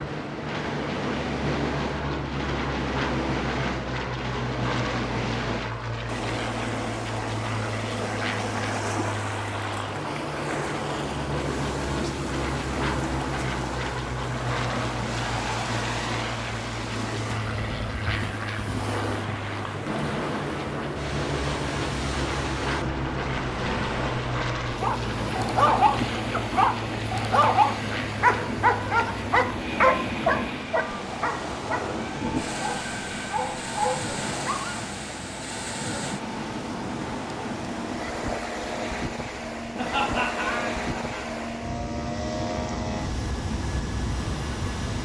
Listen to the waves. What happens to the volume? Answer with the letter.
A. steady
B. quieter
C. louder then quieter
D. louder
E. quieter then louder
A.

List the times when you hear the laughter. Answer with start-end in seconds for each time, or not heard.
39.7-41.2.